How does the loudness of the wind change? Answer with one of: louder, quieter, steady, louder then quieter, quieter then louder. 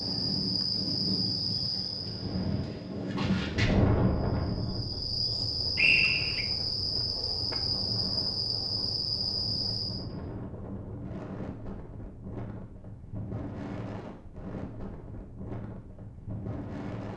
quieter.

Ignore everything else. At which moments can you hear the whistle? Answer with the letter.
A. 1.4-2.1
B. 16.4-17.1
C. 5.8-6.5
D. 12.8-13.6
C.